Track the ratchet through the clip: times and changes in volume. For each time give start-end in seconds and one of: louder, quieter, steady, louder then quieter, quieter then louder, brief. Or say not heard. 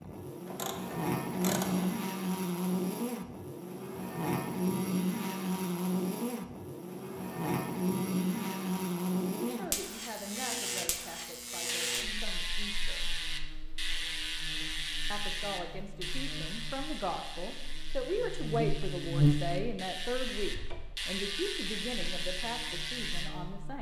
0.0-1.9 brief
11.7-23.3 quieter then louder.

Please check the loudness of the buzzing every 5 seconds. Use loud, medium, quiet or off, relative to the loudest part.
loud, loud, medium, loud, quiet.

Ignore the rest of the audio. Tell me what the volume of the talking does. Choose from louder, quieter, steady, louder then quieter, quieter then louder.
louder then quieter.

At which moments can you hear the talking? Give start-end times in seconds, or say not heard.
9.3-13.1, 15.1-23.7.